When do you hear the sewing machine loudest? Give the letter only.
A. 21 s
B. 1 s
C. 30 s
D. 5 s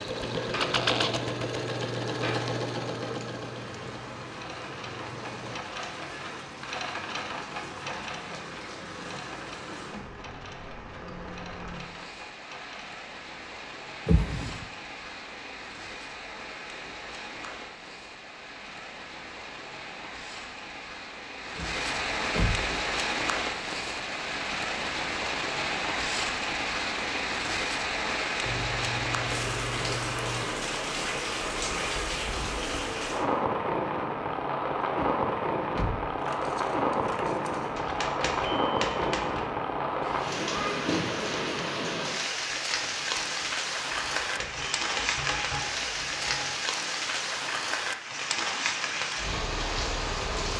B.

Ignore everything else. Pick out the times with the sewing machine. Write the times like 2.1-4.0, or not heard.
0.0-5.6.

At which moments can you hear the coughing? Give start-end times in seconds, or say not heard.
not heard.